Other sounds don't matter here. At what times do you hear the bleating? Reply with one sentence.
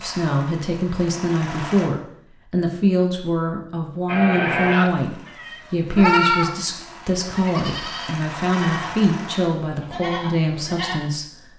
The bleating can be heard from 4.0 to 11.1 s.